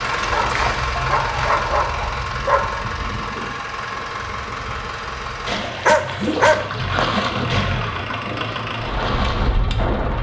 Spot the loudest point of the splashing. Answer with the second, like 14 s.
7 s.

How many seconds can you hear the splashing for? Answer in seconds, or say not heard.
6 s.